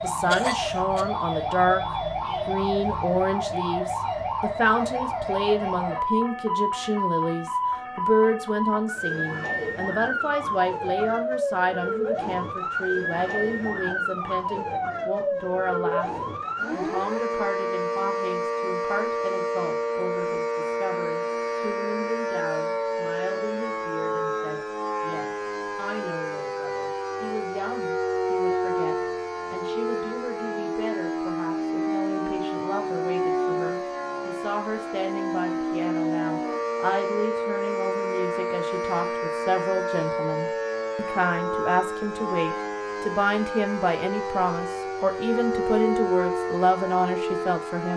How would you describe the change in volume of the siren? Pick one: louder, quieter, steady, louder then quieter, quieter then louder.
steady.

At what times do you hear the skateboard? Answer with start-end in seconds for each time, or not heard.
not heard.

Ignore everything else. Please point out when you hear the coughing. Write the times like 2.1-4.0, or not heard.
0.2-1.1.